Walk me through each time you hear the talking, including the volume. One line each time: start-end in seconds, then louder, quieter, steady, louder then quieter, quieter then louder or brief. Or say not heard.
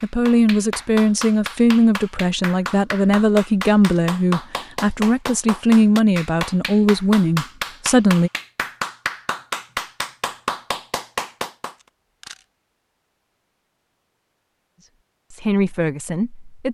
0.0-8.3 steady
14.8-16.6 brief.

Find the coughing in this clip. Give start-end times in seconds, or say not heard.
not heard.